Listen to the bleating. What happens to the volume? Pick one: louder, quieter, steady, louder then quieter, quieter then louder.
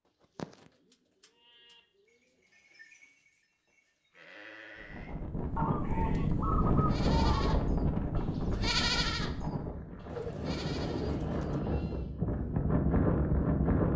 louder then quieter.